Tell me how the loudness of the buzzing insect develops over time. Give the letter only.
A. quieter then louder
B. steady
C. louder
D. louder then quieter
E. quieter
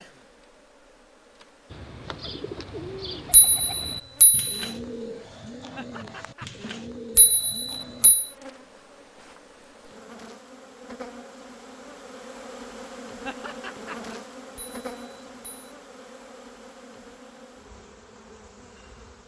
D.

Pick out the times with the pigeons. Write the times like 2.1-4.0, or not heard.
1.7-8.2.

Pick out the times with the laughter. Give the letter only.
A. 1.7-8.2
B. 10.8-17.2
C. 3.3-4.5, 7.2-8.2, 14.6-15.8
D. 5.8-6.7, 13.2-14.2
D.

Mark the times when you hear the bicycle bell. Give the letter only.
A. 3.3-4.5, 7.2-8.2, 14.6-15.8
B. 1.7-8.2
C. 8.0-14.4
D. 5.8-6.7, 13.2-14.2
A.